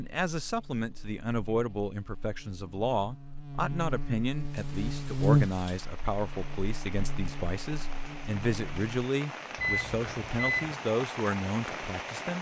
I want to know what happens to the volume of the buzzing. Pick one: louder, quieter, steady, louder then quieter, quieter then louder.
louder then quieter.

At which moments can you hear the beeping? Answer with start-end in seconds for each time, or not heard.
9.6-10.8.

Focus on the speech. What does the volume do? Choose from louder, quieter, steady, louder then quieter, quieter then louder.
steady.